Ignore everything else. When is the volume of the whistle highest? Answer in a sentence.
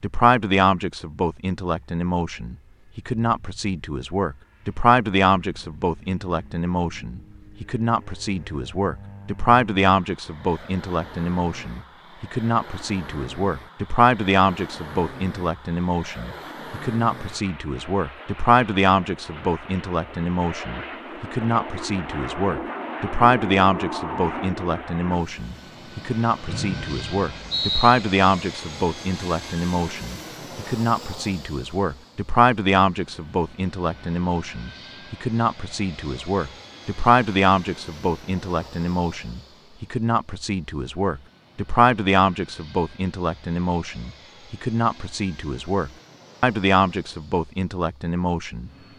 The loudest moment of the whistle is at 28 seconds.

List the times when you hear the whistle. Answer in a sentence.
You can hear the whistle from 26.4 to 28.0 s.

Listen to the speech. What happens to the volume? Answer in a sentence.
The loudness of the speech stays about the same.